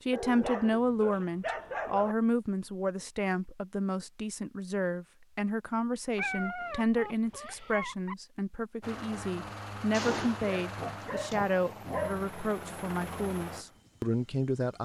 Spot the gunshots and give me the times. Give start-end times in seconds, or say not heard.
9.9-11.4.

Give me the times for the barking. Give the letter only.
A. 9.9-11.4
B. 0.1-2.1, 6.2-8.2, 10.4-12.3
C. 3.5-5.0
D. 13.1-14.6
B.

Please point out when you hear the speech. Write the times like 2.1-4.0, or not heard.
0.0-14.7.